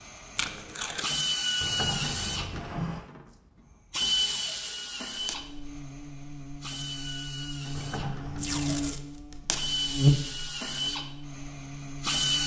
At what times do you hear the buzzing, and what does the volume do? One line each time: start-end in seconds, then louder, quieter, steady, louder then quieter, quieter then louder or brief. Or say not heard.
5.2-12.4 louder then quieter.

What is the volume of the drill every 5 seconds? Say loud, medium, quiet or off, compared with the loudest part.
loud, medium, loud.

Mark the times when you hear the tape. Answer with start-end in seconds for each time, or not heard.
0.3-1.1, 4.2-5.4, 8.3-9.7.